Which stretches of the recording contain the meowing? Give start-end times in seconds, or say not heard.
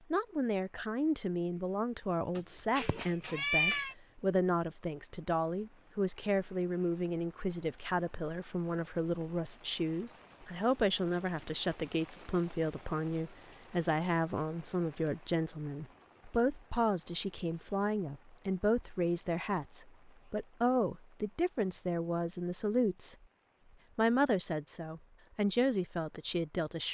2.4-4.0.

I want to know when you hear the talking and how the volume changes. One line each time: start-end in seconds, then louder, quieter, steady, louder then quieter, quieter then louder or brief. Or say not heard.
0.1-23.1 steady
23.9-26.9 brief.